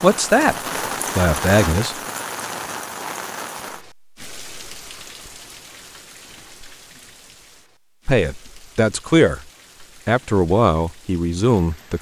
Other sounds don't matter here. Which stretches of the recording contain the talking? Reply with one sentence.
The talking can be heard from 0.0 to 0.6 s, from 1.1 to 1.9 s, from 8.1 to 9.4 s and from 10.1 to 11.9 s.